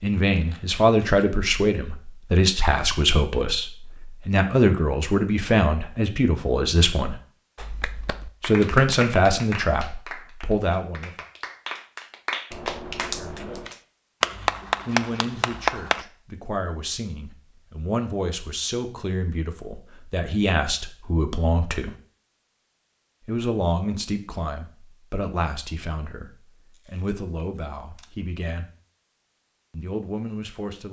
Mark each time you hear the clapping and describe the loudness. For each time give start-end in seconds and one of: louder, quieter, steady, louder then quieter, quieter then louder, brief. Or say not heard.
7.5-16.1 louder.